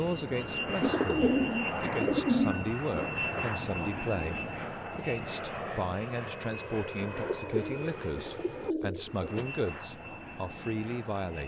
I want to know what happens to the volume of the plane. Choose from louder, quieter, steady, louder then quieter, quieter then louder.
quieter.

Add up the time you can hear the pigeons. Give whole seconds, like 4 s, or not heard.
5 s.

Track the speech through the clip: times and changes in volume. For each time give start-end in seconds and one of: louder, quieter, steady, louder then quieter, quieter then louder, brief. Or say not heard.
0.0-11.4 steady.